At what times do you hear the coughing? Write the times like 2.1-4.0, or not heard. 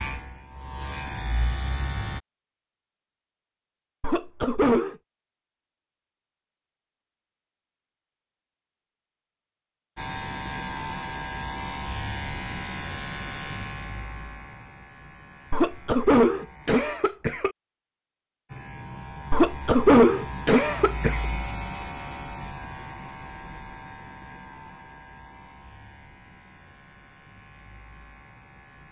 4.0-5.0, 15.5-17.6, 19.3-21.2.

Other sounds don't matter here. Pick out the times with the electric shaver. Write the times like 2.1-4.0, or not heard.
0.0-2.2, 9.9-16.8, 18.4-28.8.